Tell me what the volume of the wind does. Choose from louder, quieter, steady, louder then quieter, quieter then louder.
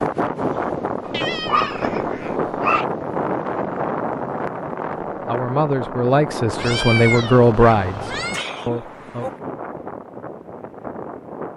quieter.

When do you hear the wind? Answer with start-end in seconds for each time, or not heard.
0.0-11.5.